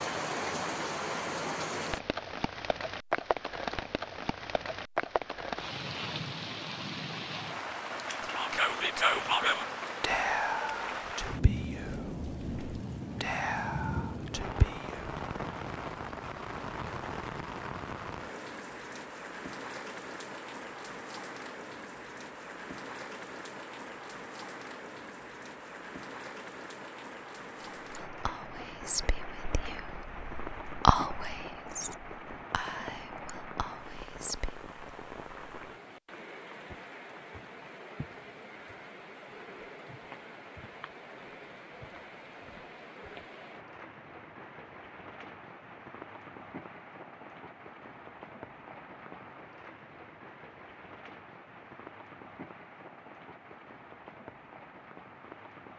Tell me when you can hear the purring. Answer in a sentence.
The purring can't be heard in this clip.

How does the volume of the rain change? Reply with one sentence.
The volume of the rain goes down.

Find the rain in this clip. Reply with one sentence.
You can hear the rain from 0.0 to 55.7 s.